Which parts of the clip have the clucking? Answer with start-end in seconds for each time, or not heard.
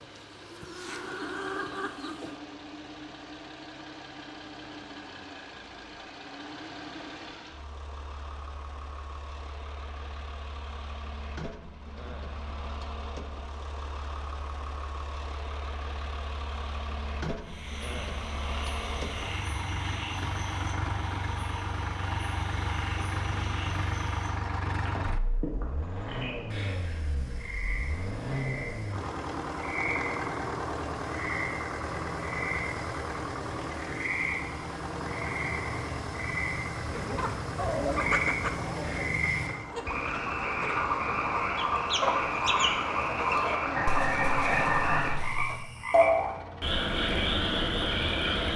0.1-2.4, 36.9-45.6.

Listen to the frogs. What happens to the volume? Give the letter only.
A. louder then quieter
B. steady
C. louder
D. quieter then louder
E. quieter
C.